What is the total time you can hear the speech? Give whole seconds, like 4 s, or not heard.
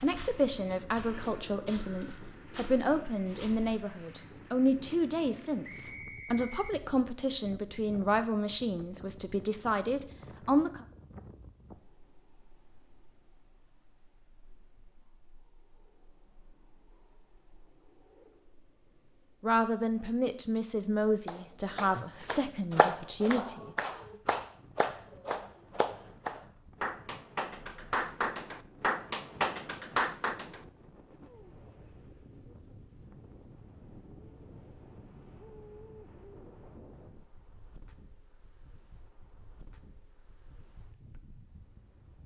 15 s.